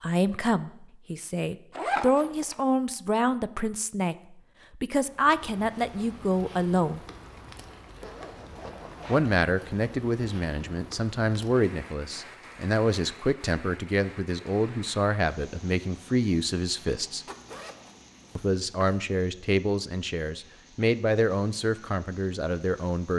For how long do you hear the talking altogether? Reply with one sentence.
You can hear the talking for 20 seconds altogether.